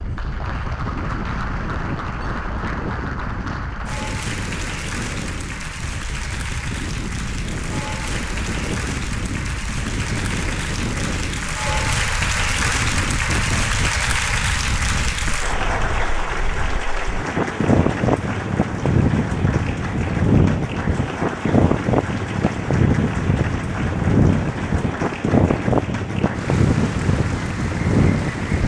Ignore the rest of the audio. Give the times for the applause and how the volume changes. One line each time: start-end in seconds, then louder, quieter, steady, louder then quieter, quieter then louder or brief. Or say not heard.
0.0-28.6 louder then quieter.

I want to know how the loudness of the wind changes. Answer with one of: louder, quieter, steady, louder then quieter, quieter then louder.
louder.